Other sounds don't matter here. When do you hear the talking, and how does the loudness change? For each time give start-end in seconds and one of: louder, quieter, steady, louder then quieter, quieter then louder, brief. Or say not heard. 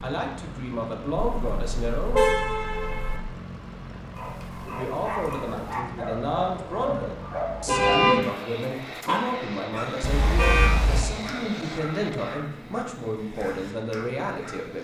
0.0-2.2 brief
4.7-14.7 steady.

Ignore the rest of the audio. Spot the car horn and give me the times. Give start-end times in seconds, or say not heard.
1.3-3.2, 7.7-8.2, 10.0-11.1.